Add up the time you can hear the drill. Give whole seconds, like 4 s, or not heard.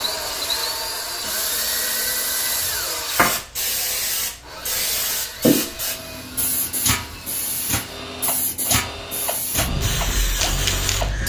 11 s.